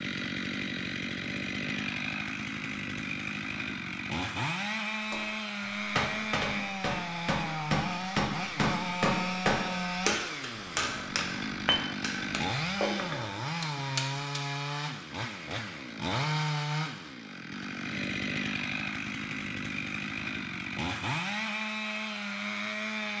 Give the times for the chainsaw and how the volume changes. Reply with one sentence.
The chainsaw can be heard from 0.0 to 23.1 s, at a steady volume.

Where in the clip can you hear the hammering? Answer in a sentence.
The hammering can be heard from 5.1 to 14.4 s.